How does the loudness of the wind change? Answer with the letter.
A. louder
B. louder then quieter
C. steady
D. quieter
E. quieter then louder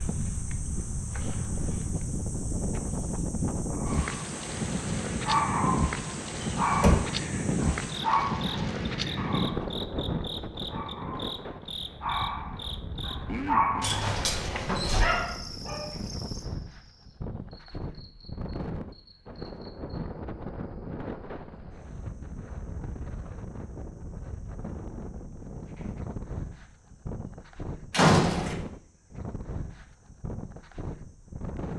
D.